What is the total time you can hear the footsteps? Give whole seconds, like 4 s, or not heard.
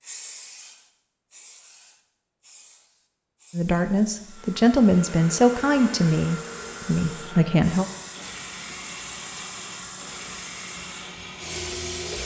not heard.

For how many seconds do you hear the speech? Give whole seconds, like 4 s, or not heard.
4 s.